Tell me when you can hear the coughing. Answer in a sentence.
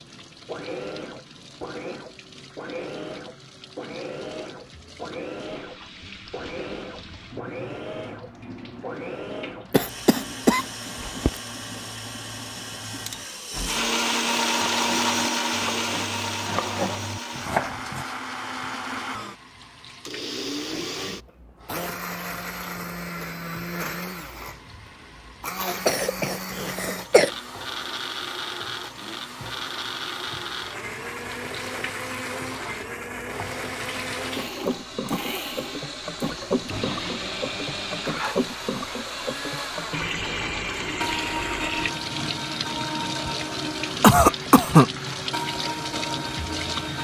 You can hear the coughing from 9.7 to 11.3 s, from 25.9 to 27.3 s and from 44.0 to 44.9 s.